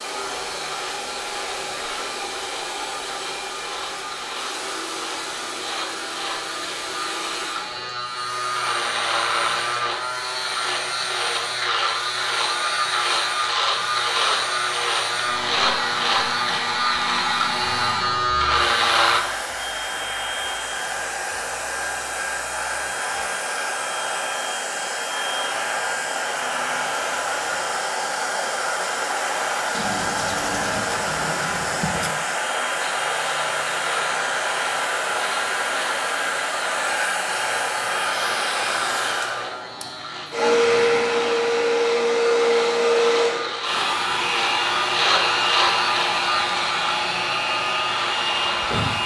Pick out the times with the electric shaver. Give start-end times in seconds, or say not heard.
0.0-19.2, 32.8-49.0.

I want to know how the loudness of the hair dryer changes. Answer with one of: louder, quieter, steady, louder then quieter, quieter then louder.
louder.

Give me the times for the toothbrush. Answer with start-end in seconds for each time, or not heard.
29.7-32.1.